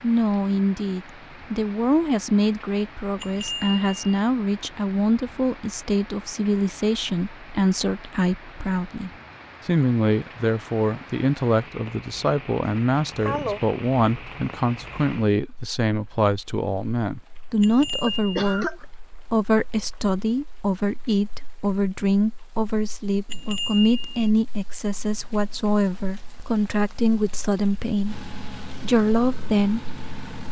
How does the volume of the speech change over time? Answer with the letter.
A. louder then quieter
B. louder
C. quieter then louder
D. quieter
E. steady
E.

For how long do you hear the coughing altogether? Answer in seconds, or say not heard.
2 s.